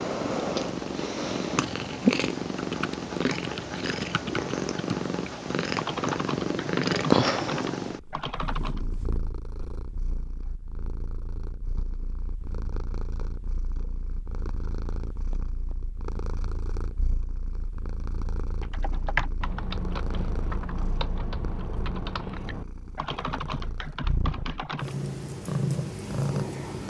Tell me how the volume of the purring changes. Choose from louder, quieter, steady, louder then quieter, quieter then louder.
quieter then louder.